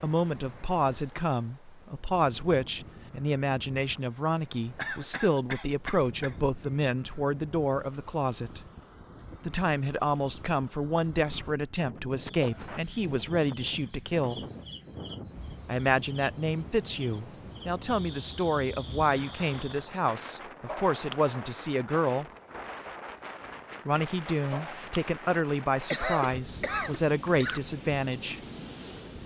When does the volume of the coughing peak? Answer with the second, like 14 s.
26 s.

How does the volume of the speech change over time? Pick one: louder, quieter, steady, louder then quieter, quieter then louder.
steady.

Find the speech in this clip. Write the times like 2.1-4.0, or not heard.
0.0-8.7, 9.4-14.4, 15.7-22.2, 23.9-28.4.